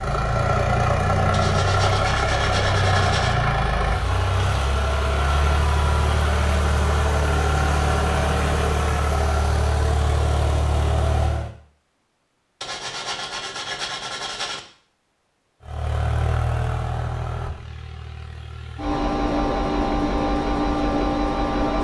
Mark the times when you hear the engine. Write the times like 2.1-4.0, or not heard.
0.0-11.5, 15.6-21.7.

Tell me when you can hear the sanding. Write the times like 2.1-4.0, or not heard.
1.3-3.4, 12.6-14.6.